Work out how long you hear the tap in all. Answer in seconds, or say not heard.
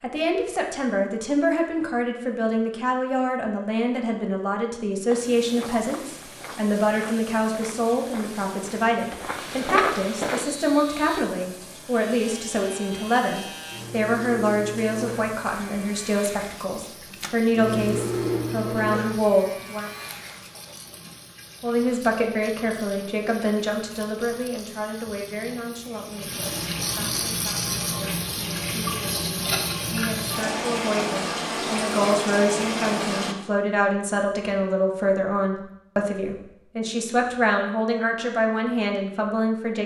28 s.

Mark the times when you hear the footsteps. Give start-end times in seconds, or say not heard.
5.0-10.4.